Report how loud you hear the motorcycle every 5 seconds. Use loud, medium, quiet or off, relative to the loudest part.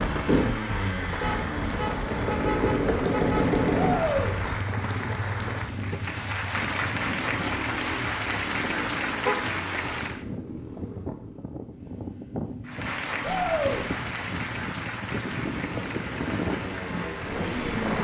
loud, medium, quiet, medium.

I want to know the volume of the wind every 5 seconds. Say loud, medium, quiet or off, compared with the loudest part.
loud, medium, medium, loud.